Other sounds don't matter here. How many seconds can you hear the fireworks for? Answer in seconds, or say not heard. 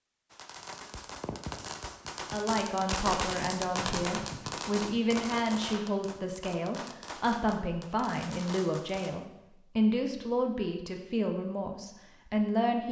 9 s.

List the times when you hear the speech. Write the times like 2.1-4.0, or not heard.
2.3-12.8.